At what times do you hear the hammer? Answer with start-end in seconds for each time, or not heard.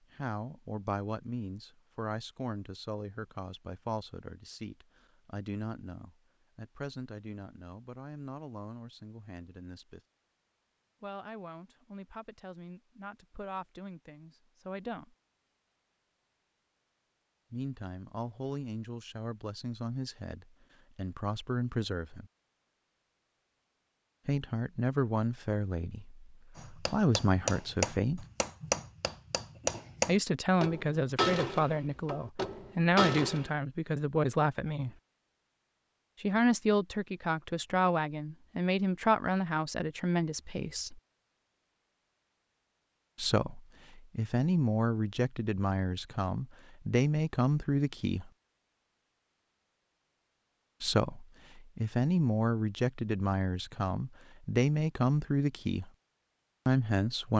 26.6-33.5.